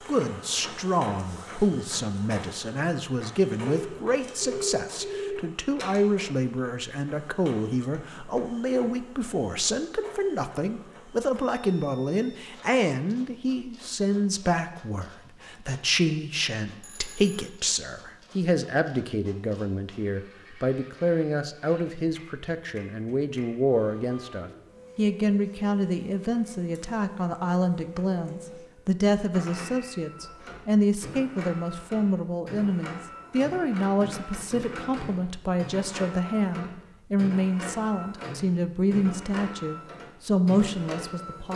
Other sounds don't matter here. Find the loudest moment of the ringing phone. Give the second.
5 s.